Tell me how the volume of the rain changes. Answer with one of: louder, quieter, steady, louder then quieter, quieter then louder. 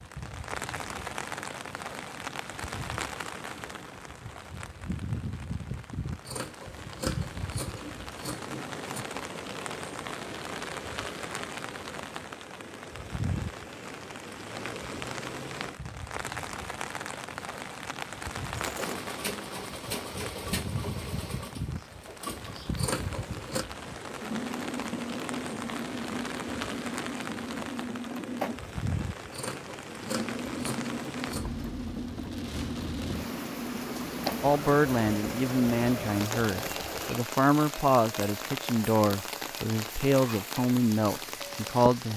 steady.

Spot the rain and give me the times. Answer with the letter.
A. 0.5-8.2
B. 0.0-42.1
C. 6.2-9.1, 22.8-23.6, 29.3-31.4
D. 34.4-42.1
B.